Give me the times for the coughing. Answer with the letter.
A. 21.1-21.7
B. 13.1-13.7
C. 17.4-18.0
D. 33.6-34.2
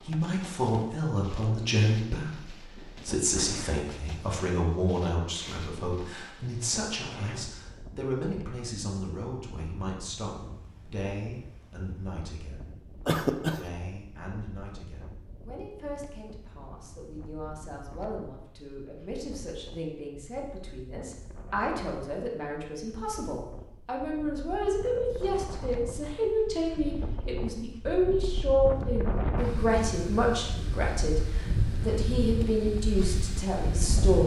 B.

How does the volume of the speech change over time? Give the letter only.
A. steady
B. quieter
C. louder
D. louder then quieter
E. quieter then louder
E.